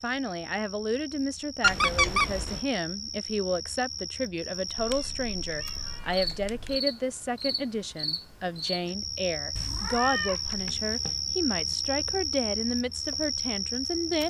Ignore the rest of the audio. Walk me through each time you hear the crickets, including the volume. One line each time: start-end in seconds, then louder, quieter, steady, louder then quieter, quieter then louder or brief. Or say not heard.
0.0-14.2 louder.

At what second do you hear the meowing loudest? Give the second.
2 s.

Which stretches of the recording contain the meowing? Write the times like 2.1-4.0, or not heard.
1.6-2.6, 4.8-6.8, 9.6-11.2.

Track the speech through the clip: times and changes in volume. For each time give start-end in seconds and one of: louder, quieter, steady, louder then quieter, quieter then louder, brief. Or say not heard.
0.0-14.2 steady.